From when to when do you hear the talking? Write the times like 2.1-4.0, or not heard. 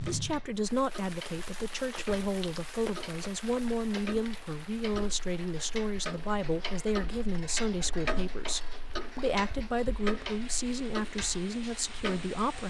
0.0-12.6.